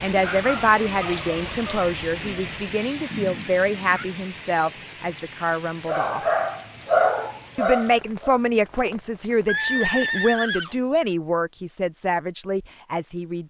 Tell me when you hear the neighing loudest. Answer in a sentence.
The loudest moment of the neighing is at 10 seconds.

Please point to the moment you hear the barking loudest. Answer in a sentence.
The volume of the barking peaks at 7 seconds.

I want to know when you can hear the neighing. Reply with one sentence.
The neighing can be heard from 3.1 to 4.0 s and from 9.4 to 10.8 s.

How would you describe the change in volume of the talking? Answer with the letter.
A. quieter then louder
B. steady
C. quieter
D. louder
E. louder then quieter
B.